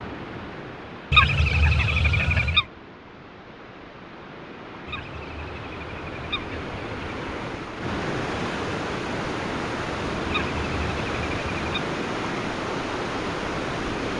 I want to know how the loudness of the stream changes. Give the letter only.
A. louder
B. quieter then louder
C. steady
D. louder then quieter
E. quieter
A.